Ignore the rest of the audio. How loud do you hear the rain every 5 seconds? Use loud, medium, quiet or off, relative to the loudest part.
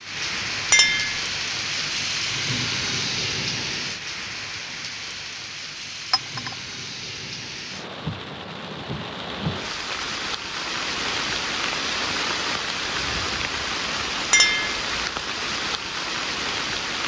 loud, medium, loud, loud.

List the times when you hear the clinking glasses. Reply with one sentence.
You can hear the clinking glasses from 0.7 to 1.2 s, from 6.1 to 6.5 s and from 14.3 to 14.8 s.